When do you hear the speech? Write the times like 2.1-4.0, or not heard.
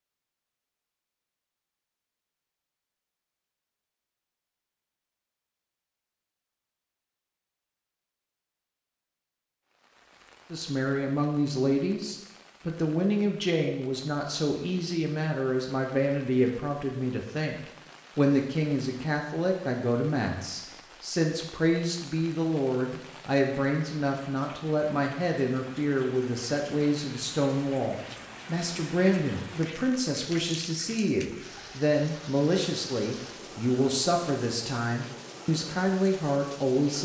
10.5-37.0.